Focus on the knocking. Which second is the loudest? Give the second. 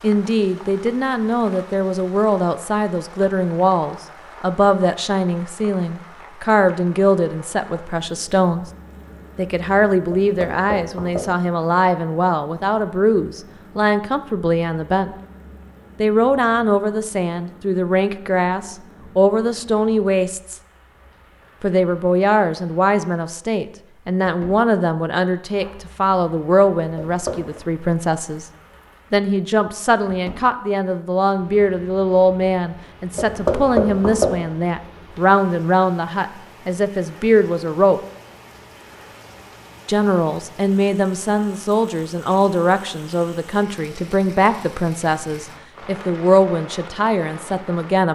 34 s.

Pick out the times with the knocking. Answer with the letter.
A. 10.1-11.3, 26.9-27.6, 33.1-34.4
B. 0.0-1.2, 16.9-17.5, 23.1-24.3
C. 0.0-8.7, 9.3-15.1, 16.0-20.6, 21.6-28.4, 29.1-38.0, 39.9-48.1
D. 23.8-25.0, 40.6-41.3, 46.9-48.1
A.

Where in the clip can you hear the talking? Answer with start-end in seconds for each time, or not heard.
0.0-8.7, 9.3-15.1, 16.0-20.6, 21.6-28.4, 29.1-38.0, 39.9-48.1.